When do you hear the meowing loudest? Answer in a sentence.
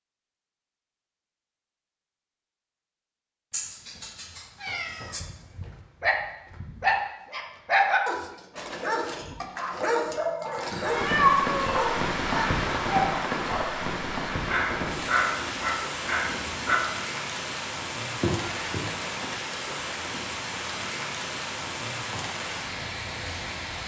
The loudest moment of the meowing is at 11 seconds.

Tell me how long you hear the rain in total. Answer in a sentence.
The rain can be heard for 13 seconds in total.